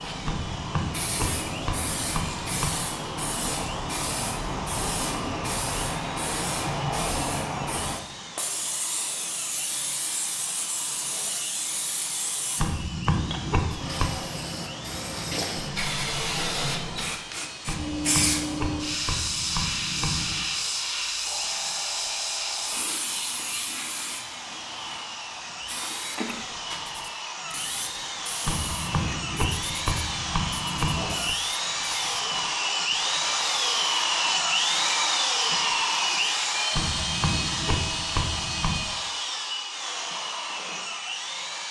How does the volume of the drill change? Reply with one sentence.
The loudness of the drill goes up.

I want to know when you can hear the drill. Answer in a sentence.
You can hear the drill from 0.0 to 41.6 s.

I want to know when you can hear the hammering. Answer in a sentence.
The hammering can be heard from 0.2 to 2.7 s, from 12.6 to 14.2 s, from 17.6 to 20.5 s, from 28.4 to 31.4 s and from 36.7 to 38.9 s.